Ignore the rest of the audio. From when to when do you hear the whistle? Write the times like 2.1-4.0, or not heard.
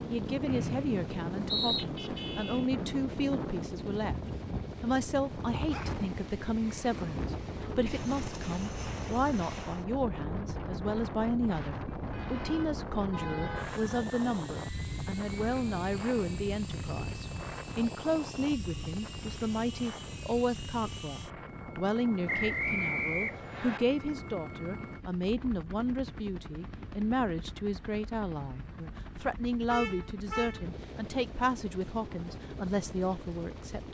0.5-1.9, 22.2-23.8.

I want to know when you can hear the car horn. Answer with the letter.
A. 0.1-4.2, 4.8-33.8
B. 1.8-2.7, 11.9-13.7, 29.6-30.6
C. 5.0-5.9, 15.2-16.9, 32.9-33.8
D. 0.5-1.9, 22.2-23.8
B.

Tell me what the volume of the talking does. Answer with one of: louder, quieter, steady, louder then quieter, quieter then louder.
steady.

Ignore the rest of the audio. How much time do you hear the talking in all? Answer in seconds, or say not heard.
33 s.